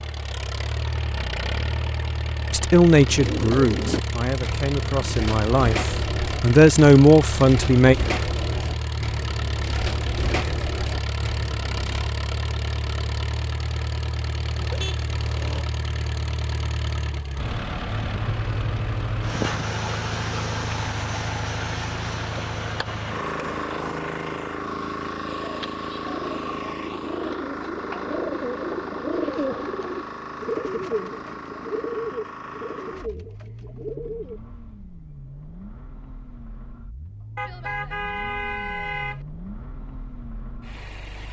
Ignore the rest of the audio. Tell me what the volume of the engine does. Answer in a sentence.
The volume of the engine goes down.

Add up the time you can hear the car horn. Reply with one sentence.
You can hear the car horn for 3 seconds altogether.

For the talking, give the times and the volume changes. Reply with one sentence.
The talking can be heard from 2.5 to 8.0 s, getting quieter then louder.